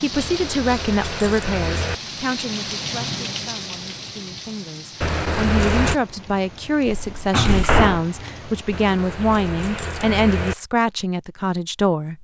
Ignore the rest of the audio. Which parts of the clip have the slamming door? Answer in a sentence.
You can hear the slamming door from 6.8 to 8.1 s.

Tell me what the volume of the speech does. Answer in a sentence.
The loudness of the speech goes down, then up.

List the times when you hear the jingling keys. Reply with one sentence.
You can hear the jingling keys from 0.1 to 1.9 s, from 5.0 to 6.0 s and from 8.7 to 10.6 s.